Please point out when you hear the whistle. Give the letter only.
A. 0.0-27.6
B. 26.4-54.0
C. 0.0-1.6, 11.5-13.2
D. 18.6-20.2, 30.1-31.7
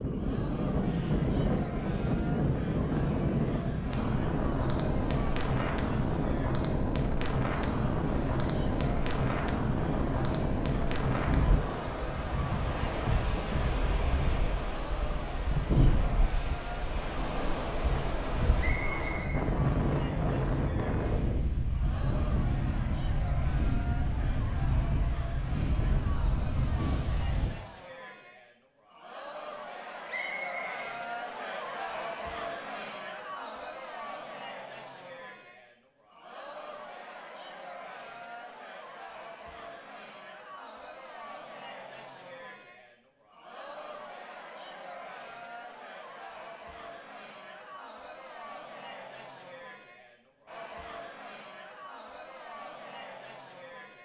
D.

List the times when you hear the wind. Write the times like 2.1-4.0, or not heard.
0.0-27.6.